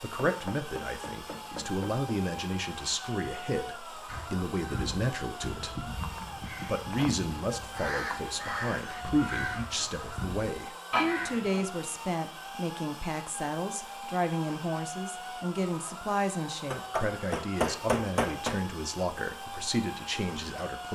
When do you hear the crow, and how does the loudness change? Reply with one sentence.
The crow can be heard from 4.0 to 11.7 s, getting louder.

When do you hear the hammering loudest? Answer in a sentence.
The loudest moment of the hammering is at 18 seconds.